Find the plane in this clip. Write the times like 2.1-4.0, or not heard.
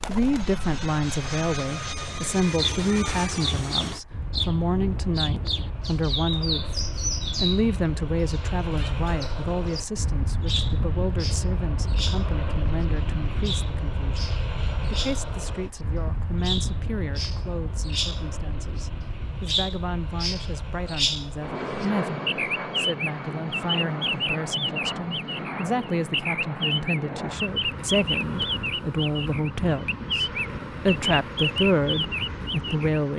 0.1-33.1.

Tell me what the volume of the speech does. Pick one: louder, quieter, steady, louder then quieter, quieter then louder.
quieter then louder.